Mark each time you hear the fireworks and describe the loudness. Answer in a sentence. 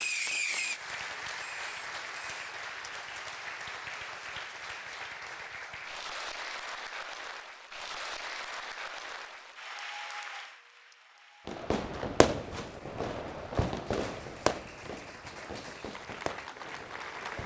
You can hear the fireworks briefly from 0.0 to 2.5 s; and from 11.4 to 17.4 s, getting quieter.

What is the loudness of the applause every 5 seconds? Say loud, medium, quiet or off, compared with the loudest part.
loud, loud, medium, loud.